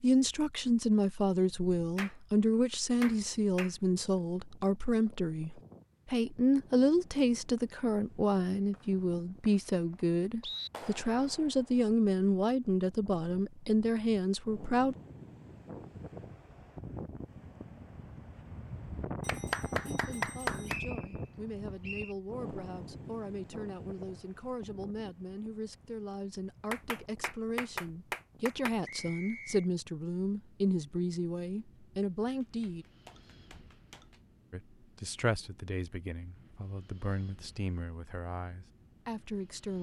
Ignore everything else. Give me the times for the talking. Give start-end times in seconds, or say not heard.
0.0-14.9, 19.9-32.9, 34.5-39.7.